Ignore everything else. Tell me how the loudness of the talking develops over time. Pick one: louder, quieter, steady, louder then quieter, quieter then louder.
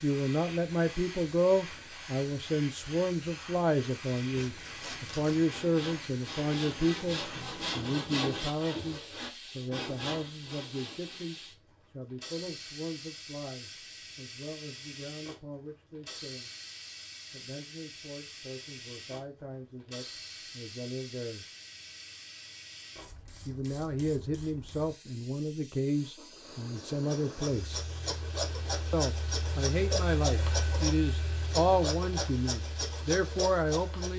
quieter then louder.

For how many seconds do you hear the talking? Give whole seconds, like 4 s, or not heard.
30 s.